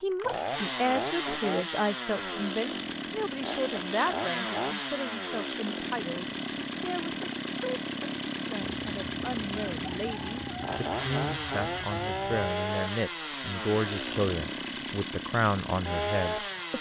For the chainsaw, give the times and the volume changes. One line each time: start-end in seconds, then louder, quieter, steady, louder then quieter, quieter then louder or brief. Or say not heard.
0.1-16.7 steady.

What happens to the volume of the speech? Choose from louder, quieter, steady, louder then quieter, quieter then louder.
quieter then louder.